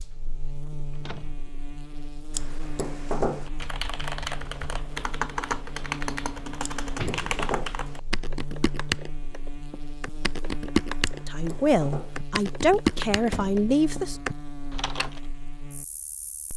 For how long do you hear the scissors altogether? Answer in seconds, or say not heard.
3 s.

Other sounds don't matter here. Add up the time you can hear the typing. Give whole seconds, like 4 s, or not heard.
12 s.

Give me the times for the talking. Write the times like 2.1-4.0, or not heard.
11.2-14.2.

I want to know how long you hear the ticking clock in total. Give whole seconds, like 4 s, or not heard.
not heard.